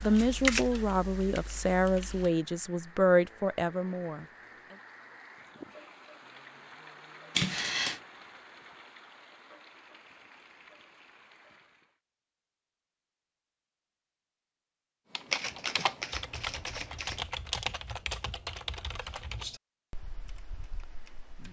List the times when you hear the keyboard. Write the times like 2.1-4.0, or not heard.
0.0-2.3, 15.1-21.4.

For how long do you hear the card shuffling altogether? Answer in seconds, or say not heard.
3 s.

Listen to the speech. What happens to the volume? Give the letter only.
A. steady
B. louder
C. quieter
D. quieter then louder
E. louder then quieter
A.